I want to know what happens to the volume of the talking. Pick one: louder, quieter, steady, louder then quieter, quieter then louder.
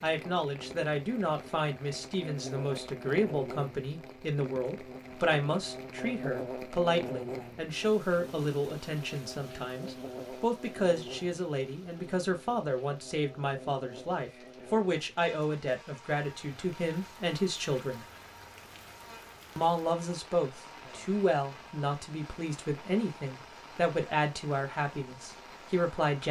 steady.